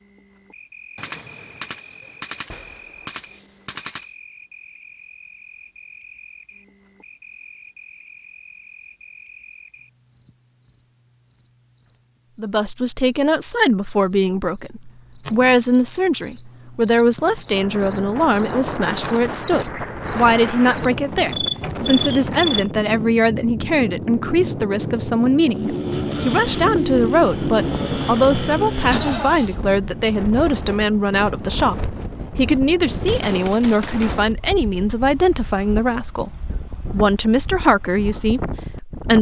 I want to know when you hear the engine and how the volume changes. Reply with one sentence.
You can hear the engine from 25.4 to 29.6 s, at a steady volume.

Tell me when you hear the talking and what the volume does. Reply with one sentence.
You can hear the talking from 12.3 to 39.1 s, at a steady volume.